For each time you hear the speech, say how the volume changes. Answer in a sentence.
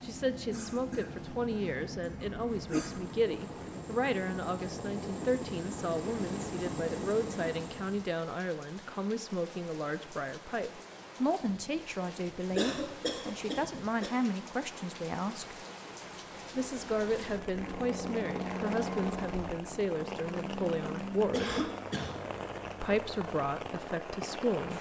The speech can be heard from 0.0 to 15.6 s, at a steady volume; from 16.6 to 21.6 s, at a steady volume; and briefly from 22.8 to 24.7 s.